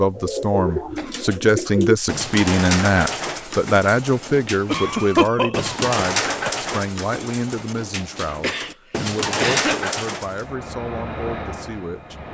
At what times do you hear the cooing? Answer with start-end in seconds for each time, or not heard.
0.0-10.4.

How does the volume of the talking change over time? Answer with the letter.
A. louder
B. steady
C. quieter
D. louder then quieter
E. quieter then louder
C.